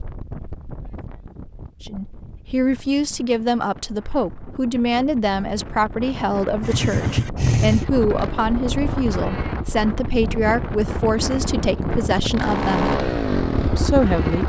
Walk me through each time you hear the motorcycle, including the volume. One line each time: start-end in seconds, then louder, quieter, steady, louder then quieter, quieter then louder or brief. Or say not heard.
6.6-14.4 quieter then louder.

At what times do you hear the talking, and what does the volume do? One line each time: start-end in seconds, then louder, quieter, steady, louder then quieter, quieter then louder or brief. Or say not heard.
1.8-12.9 steady
13.8-14.4 brief.